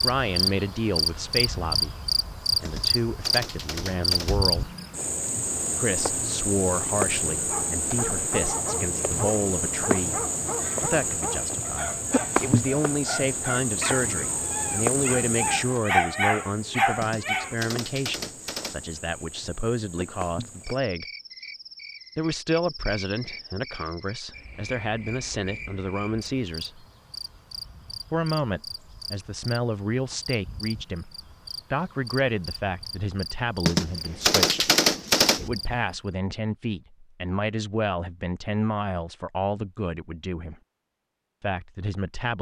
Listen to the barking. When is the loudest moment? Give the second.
16 s.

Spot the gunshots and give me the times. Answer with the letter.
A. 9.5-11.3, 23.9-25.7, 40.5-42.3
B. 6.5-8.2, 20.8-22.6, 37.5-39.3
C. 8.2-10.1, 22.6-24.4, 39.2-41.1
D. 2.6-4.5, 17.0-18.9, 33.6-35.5
D.